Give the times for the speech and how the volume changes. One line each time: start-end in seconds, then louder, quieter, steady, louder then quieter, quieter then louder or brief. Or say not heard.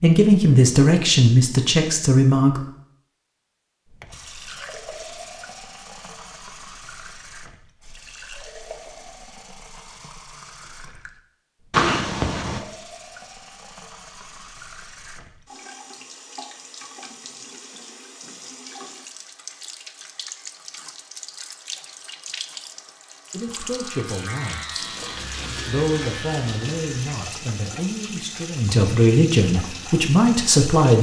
0.0-2.6 brief
23.3-24.9 brief
25.6-30.9 louder.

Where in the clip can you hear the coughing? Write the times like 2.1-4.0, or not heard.
11.7-12.6.